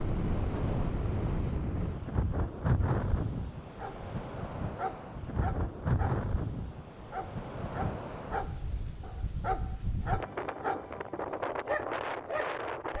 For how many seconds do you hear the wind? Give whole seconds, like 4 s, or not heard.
13 s.